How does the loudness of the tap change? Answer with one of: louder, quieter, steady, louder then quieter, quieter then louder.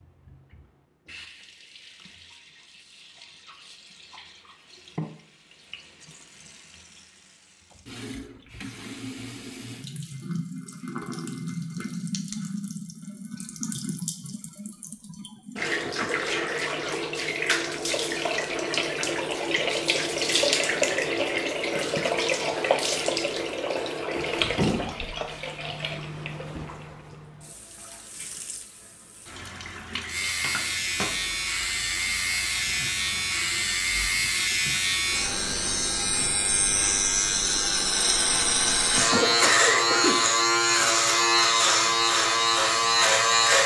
louder then quieter.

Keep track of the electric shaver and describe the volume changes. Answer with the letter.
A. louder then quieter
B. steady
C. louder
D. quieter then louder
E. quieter
C.